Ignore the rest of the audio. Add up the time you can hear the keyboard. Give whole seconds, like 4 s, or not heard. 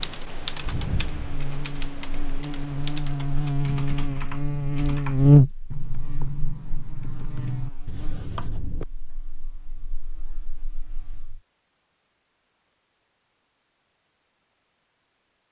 9 s.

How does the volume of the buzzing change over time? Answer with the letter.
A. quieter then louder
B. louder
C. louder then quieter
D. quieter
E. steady
C.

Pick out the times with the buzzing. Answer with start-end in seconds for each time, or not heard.
0.0-11.4.